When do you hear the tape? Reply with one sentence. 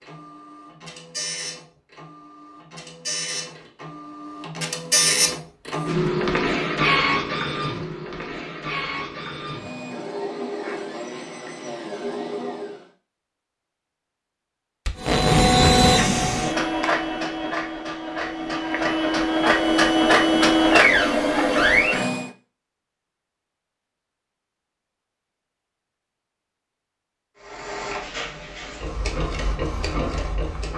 The tape can be heard from 14.8 to 15.8 s.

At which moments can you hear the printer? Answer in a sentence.
You can hear the printer from 0.0 to 12.8 s, from 15.0 to 22.3 s and from 27.4 to 30.7 s.